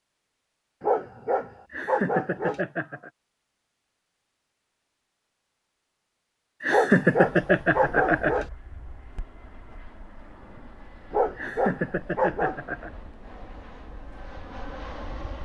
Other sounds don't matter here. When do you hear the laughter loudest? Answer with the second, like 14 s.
7 s.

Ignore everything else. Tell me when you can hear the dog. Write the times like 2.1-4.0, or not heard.
0.8-2.6, 6.7-8.4, 11.1-12.6.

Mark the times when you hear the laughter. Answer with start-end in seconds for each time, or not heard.
1.7-3.1, 6.6-8.4, 11.3-12.9.